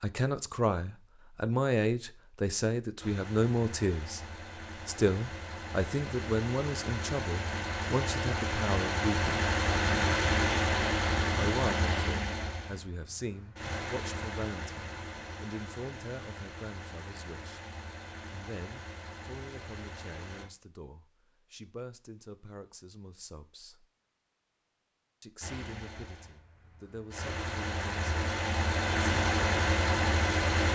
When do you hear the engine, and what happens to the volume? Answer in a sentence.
You can hear the engine from 3.0 to 20.4 s, getting louder then quieter; and from 25.4 to 30.7 s, getting louder.